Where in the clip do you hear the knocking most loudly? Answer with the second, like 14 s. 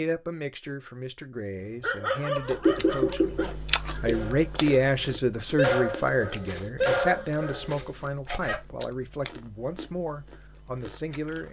3 s.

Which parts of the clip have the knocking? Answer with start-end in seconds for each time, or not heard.
2.6-4.2.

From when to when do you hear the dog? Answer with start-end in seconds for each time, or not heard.
1.6-8.6.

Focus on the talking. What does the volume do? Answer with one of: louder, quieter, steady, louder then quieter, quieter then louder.
louder then quieter.